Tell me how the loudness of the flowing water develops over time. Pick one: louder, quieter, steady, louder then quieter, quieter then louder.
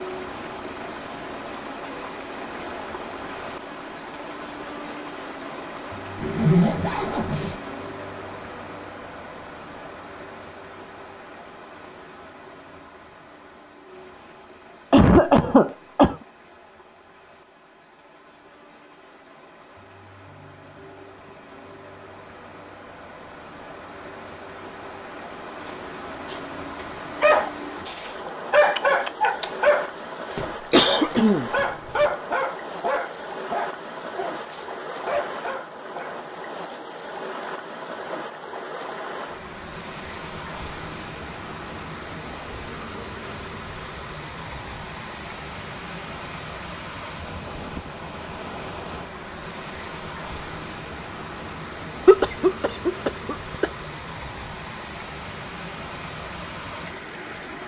quieter then louder.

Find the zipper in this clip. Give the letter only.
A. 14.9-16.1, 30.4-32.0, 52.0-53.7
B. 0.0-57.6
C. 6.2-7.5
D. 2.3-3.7
C.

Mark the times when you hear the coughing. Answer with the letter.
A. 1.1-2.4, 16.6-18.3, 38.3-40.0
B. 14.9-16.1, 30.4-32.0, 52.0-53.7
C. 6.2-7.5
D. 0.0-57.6
B.